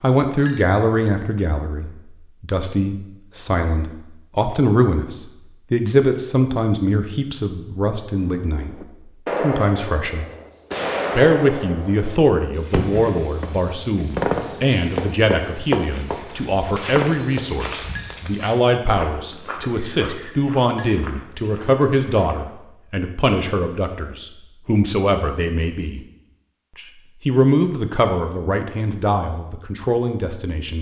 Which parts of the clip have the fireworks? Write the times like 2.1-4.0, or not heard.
8.1-17.6.